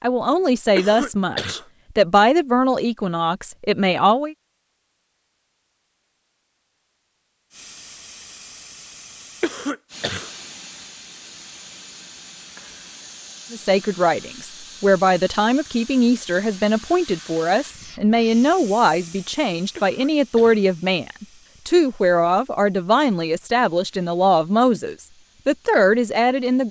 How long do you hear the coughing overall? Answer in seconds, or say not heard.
3 s.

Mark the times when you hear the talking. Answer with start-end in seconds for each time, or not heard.
0.0-4.3, 13.5-26.6.